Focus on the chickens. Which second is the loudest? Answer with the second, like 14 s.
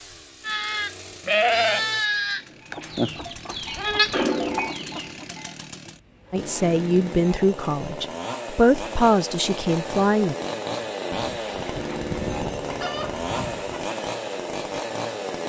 12 s.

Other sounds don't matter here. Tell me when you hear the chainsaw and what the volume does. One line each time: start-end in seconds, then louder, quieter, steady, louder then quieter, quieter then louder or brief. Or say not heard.
0.0-15.4 louder.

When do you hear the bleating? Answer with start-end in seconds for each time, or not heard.
0.4-5.5.